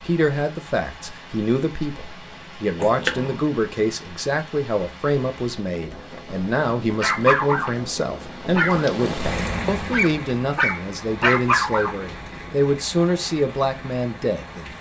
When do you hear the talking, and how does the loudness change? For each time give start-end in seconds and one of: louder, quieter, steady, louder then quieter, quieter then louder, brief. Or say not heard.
0.0-14.7 steady.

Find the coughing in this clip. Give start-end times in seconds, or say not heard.
2.8-3.4.